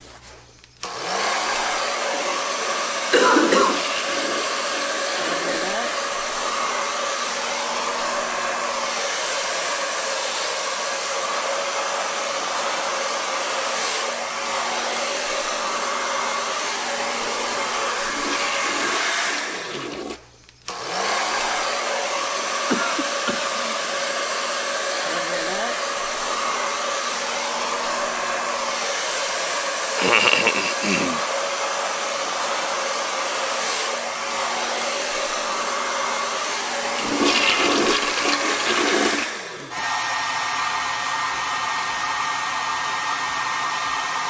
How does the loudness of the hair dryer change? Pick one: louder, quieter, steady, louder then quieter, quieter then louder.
steady.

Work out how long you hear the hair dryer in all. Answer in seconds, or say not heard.
44 s.